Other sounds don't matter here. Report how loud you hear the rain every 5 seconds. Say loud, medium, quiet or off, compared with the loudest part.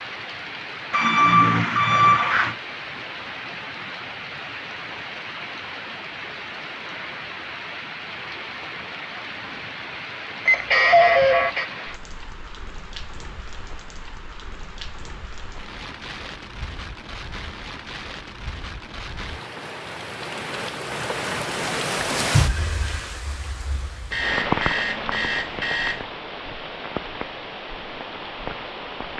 medium, medium, medium, medium, loud, medium.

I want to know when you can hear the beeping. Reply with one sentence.
You can hear the beeping from 0.9 to 2.5 s, from 10.4 to 11.7 s and from 24.1 to 26.1 s.